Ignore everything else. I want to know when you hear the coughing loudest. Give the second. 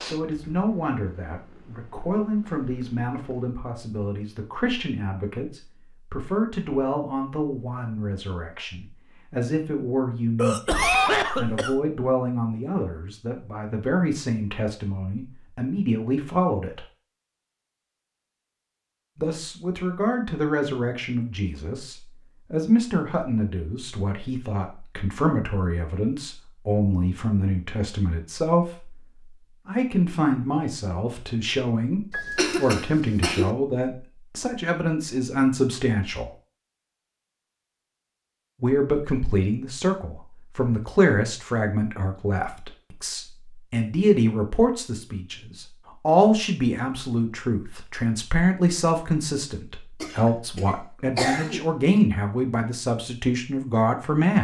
11 s.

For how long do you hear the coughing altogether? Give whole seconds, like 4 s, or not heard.
5 s.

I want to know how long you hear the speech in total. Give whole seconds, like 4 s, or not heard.
49 s.